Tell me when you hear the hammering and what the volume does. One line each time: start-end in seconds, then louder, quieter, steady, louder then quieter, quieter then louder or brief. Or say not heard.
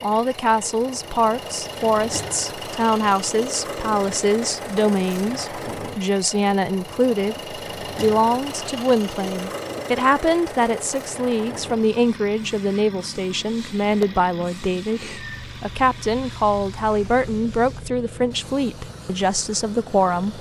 not heard.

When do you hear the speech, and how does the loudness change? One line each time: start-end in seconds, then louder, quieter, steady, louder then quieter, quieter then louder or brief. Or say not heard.
0.0-20.3 steady.